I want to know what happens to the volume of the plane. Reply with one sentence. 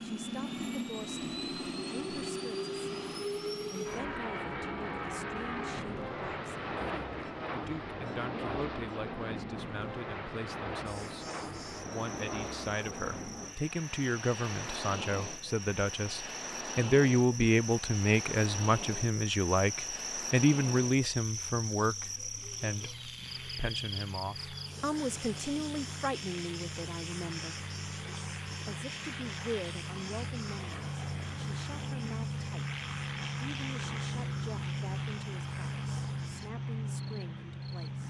The volume of the plane goes down, then up.